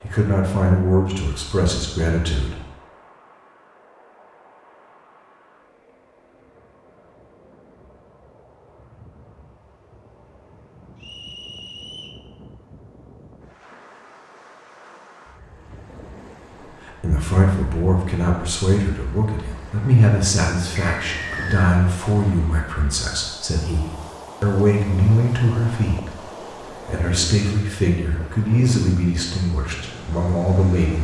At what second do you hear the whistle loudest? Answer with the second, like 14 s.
21 s.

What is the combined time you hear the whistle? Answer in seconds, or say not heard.
2 s.